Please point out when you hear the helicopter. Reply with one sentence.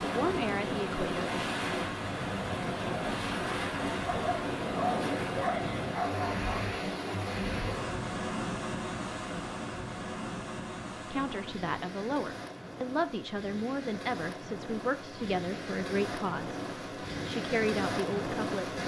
You can't hear the helicopter here.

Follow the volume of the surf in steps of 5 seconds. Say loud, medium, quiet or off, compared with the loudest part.
loud, loud, medium, loud.